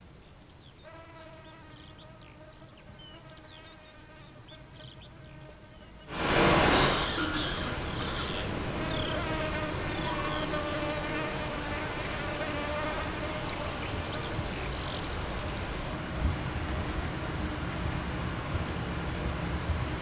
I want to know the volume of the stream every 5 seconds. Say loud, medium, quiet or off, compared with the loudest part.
off, loud, medium, medium.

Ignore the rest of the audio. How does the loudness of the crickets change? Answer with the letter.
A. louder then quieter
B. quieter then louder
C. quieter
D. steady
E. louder
E.